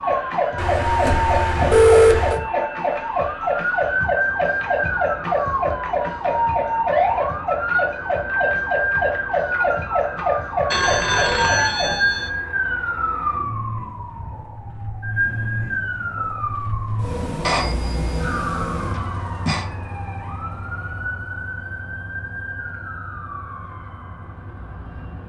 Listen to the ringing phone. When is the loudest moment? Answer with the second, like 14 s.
2 s.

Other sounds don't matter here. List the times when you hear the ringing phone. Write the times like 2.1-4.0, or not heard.
0.6-2.4, 10.7-12.3, 17.4-19.6.